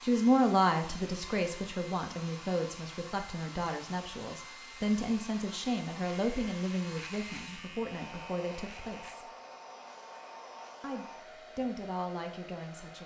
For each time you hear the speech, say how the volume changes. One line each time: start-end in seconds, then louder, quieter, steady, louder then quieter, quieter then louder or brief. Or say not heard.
0.0-9.2 quieter
10.8-13.0 brief.